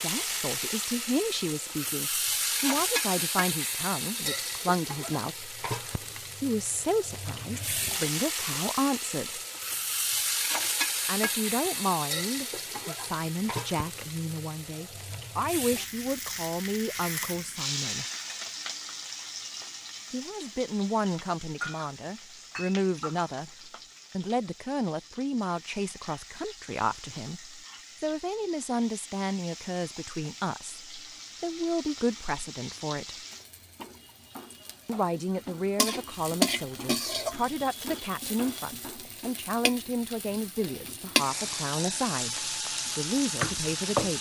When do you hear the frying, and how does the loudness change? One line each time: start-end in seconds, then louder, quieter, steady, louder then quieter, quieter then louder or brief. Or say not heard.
0.0-44.1 quieter then louder.